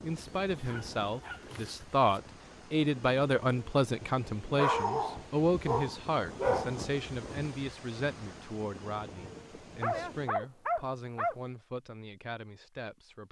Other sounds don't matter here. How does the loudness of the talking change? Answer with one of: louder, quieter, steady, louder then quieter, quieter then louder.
quieter.